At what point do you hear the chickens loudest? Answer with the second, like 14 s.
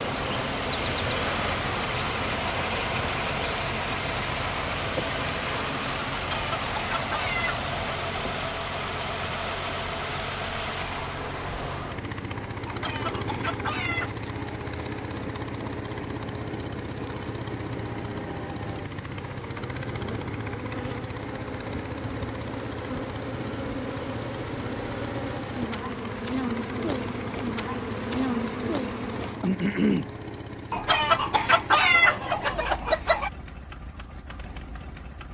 32 s.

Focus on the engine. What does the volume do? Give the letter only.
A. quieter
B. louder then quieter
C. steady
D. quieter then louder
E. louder
A.